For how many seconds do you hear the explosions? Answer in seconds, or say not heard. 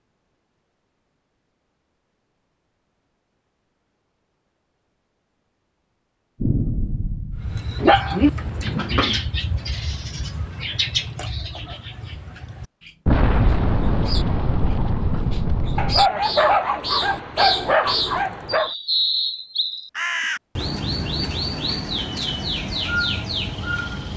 4 s.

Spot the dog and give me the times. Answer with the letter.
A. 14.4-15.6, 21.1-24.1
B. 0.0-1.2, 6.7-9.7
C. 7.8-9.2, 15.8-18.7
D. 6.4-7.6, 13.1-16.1
C.